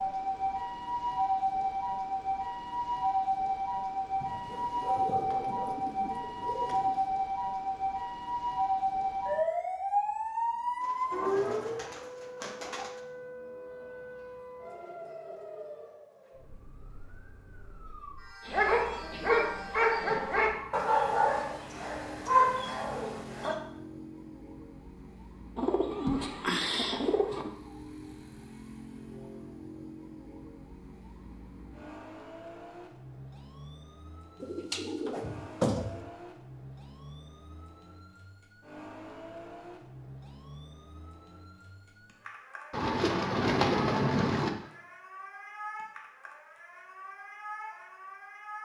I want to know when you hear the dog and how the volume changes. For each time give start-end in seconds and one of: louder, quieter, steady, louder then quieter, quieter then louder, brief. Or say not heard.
4.5-7.0 brief
18.4-23.6 quieter then louder.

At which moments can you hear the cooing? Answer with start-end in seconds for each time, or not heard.
4.2-7.0, 10.8-13.0, 25.6-27.5, 34.4-36.0, 42.7-44.5.